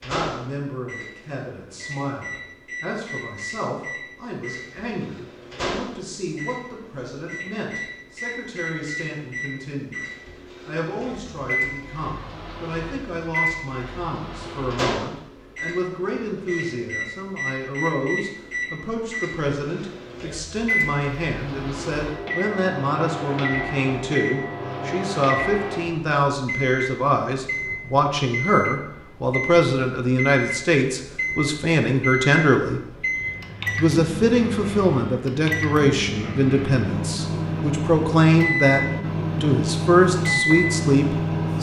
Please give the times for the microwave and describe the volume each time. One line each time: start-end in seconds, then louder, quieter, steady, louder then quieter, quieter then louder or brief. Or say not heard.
0.0-41.5 louder.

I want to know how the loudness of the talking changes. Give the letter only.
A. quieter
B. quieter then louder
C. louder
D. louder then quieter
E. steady
C.